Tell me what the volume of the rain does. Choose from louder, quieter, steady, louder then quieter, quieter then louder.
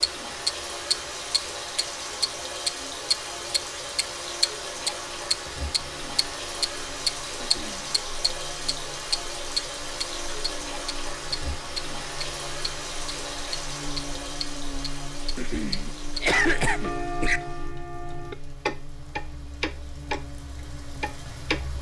quieter.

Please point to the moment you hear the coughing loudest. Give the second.
16 s.